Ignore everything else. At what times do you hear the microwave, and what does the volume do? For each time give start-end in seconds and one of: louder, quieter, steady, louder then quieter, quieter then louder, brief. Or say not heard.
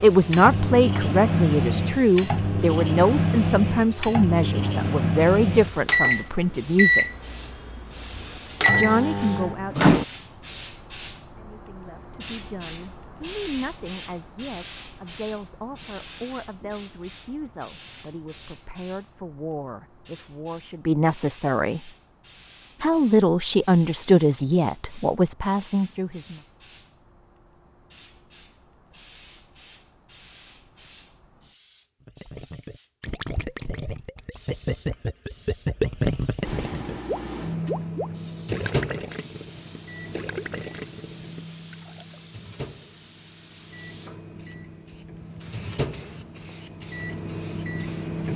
0.0-10.1 steady
36.4-48.3 quieter then louder.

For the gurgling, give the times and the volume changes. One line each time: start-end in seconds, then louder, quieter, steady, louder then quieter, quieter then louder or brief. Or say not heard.
32.0-42.2 louder then quieter.